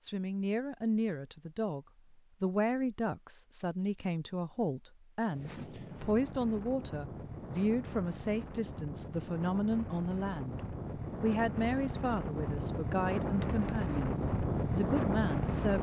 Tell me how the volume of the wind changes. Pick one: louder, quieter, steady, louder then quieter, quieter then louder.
louder.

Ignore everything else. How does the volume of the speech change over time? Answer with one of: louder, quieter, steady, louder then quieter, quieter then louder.
steady.